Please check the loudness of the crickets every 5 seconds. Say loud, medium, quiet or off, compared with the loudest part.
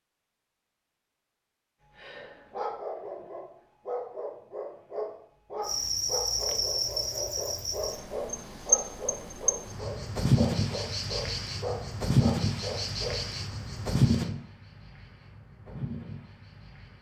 off, loud, loud, quiet.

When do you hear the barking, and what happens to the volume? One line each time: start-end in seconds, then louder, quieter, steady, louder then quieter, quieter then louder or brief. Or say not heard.
1.9-13.2 steady.